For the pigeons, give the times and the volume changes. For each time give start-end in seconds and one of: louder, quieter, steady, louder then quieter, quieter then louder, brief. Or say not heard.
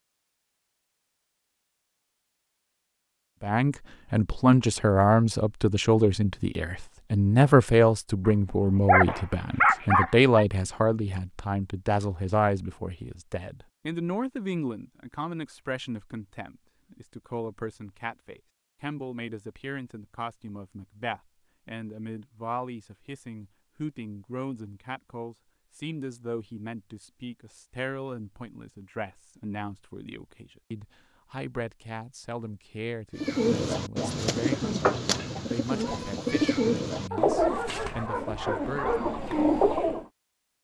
33.2-40.0 steady.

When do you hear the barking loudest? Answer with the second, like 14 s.
10 s.